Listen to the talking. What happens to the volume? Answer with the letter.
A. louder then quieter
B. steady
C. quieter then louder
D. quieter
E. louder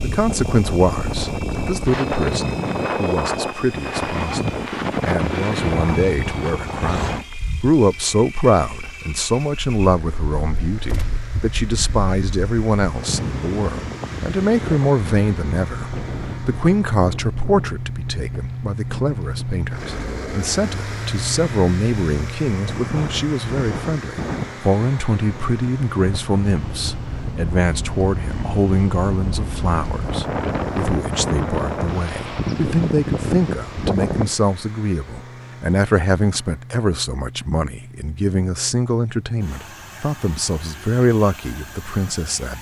B.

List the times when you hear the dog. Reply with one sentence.
You can't hear the dog here.